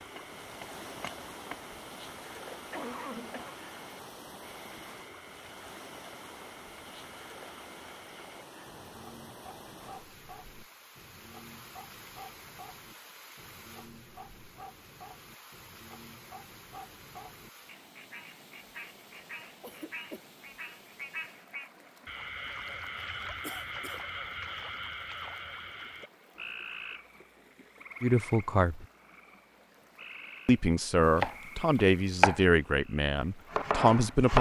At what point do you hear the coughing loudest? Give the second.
3 s.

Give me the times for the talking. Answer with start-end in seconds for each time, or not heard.
28.0-28.9, 30.4-34.3.